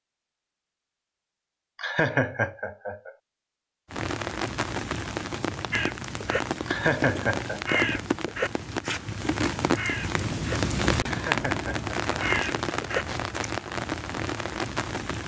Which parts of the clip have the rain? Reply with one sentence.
You can hear the rain from 3.9 to 15.2 s.